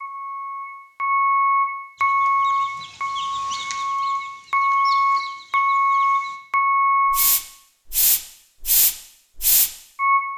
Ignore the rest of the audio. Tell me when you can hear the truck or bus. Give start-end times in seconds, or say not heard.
0.0-10.2.